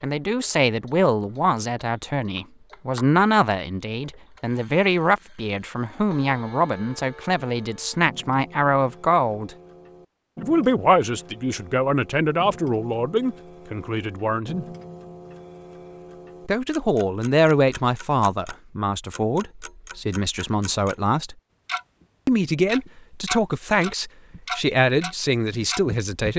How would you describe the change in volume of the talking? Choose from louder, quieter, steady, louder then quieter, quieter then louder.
steady.